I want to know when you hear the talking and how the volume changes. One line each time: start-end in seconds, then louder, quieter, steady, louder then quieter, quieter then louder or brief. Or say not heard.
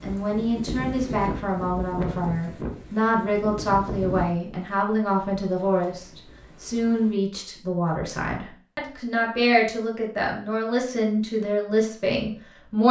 0.0-12.8 steady.